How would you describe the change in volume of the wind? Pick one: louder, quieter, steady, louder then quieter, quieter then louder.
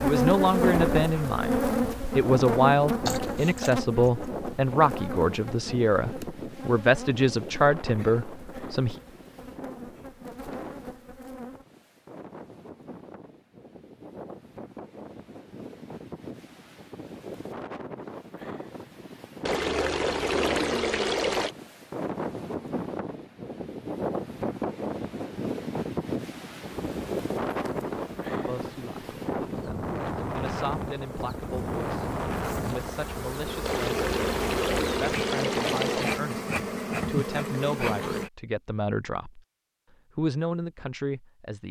quieter then louder.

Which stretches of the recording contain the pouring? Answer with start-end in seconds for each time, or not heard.
3.0-3.7, 19.4-21.6, 33.6-36.2.